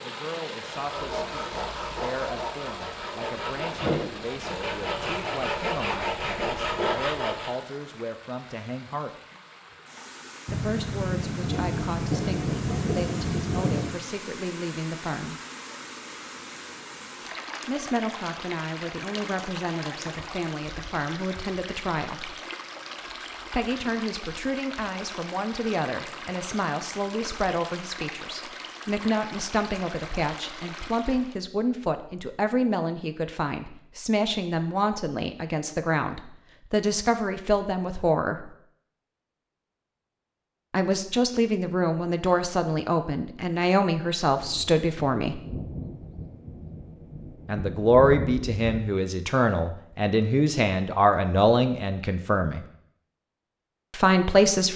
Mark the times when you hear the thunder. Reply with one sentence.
The thunder can be heard from 10.4 to 13.9 s and from 44.4 to 48.9 s.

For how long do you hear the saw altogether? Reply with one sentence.
You can hear the saw for 7 seconds altogether.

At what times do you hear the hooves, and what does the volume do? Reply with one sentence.
The hooves can't be heard in this clip.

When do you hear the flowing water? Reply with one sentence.
You can hear the flowing water from 0.0 to 31.4 s.